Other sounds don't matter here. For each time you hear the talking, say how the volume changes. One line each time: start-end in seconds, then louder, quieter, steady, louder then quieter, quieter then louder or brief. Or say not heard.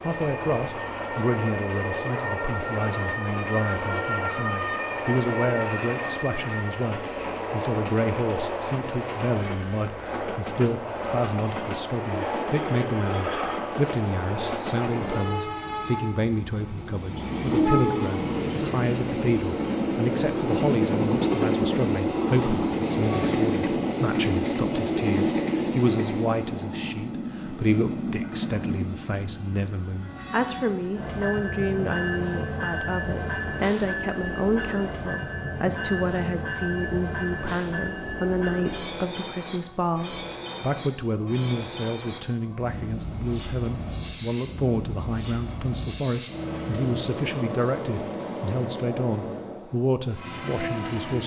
0.0-51.2 steady.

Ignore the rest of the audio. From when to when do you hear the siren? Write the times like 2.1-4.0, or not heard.
0.0-6.8.